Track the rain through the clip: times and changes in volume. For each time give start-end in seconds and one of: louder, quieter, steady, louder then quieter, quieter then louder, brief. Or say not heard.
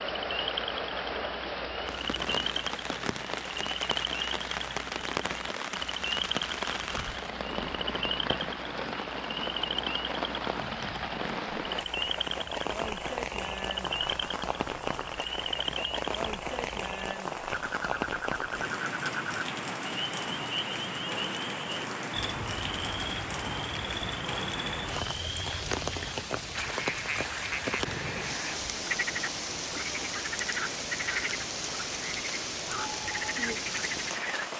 0.0-34.5 steady.